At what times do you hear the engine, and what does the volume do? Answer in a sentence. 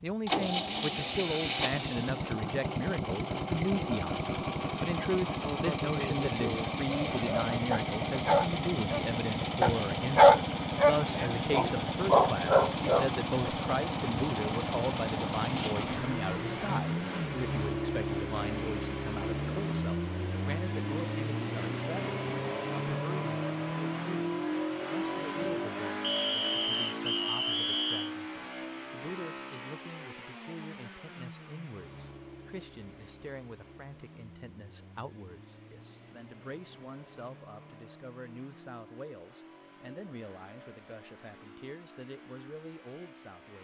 The engine can be heard from 0.0 to 43.6 s, getting quieter.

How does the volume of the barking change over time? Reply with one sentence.
The loudness of the barking goes up, then down.